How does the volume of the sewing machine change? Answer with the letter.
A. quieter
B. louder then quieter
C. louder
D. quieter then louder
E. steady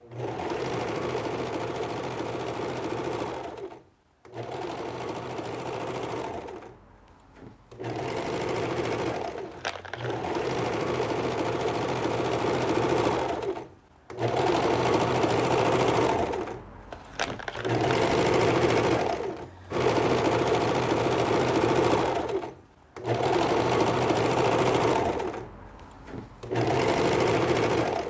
C.